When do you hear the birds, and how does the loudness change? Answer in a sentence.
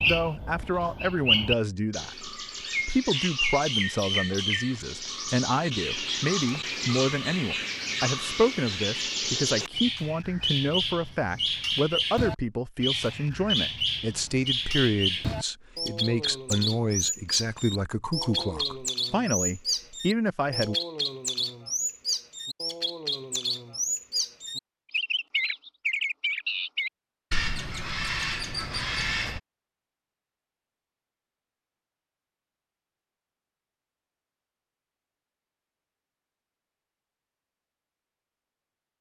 You can hear the birds from 0.0 to 29.4 s, at a steady volume.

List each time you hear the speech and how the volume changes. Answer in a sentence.
You can hear the speech from 0.1 to 20.8 s, at a steady volume.